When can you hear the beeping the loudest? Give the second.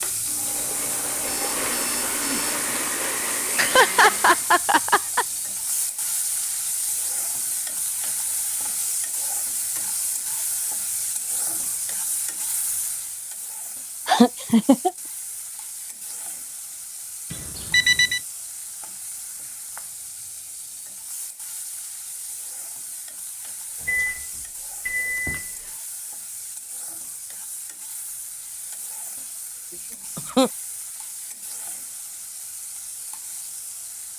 18 s.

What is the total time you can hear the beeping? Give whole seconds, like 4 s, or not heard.
4 s.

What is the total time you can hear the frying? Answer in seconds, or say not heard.
34 s.